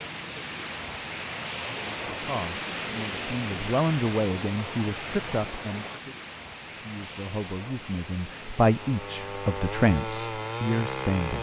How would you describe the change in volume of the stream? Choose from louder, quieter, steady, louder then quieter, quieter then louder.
quieter.